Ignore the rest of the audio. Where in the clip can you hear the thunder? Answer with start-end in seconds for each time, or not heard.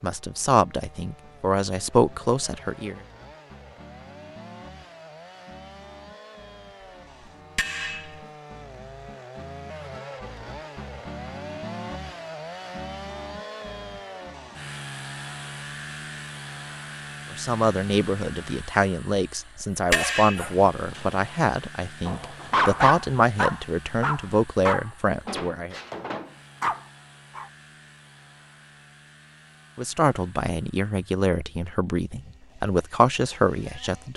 not heard.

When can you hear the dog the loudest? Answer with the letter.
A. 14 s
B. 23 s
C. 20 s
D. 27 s
B.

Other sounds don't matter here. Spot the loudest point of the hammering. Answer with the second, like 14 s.
20 s.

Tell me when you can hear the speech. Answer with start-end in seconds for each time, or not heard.
0.0-3.0, 17.3-25.8, 29.8-34.1.